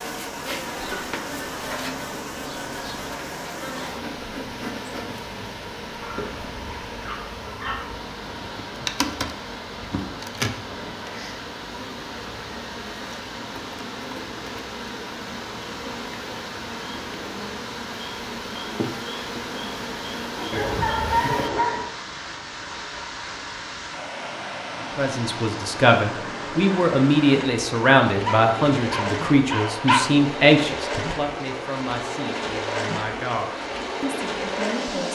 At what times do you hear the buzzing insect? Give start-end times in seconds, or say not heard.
0.0-21.5.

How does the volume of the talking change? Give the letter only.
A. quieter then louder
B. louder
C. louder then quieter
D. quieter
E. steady
D.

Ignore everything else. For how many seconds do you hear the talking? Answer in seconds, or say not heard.
10 s.